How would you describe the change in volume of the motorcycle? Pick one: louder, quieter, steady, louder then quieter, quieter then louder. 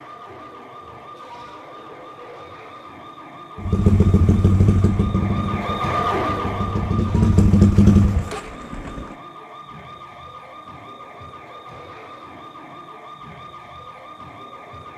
quieter then louder.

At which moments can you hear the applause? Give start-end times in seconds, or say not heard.
not heard.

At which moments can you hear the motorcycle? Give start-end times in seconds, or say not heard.
3.5-9.2.